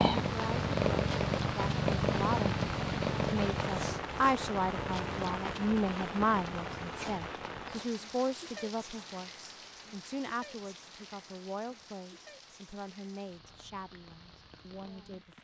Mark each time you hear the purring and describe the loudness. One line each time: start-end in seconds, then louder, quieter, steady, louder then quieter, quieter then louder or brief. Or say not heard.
0.0-7.3 quieter.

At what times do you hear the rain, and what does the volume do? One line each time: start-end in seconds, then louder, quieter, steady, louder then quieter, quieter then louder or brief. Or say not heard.
0.0-15.4 quieter.